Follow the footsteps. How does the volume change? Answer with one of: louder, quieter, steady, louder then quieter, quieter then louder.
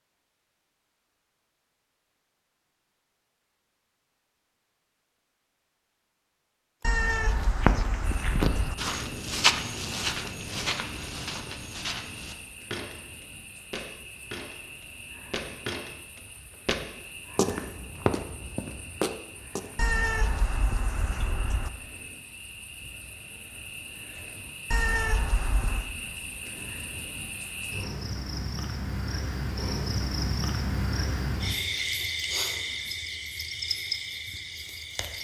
quieter then louder.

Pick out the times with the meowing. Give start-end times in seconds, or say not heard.
6.8-8.8, 19.8-21.7, 24.7-25.9.